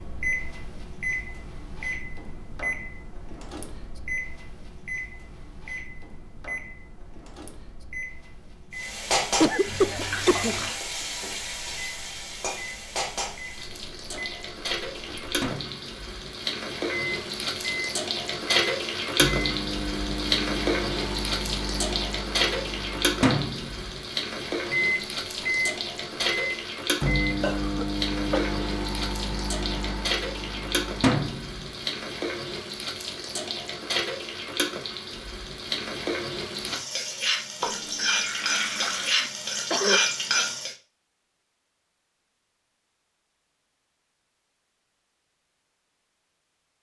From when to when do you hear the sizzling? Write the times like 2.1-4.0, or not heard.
8.8-40.8.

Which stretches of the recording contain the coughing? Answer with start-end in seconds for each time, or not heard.
9.4-10.6, 27.4-28.6, 39.2-40.0.